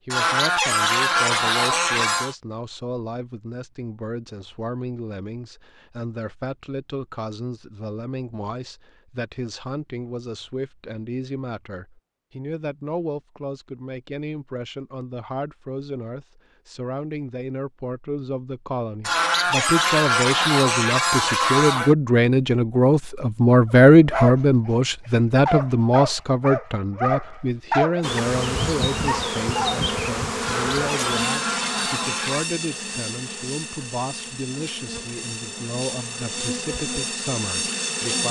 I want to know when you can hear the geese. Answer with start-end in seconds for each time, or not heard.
0.1-2.4, 19.0-21.9, 30.4-32.5.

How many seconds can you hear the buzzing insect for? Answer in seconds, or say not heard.
10 s.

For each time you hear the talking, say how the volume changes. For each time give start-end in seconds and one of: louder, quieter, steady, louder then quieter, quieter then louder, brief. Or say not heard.
0.1-38.2 louder then quieter.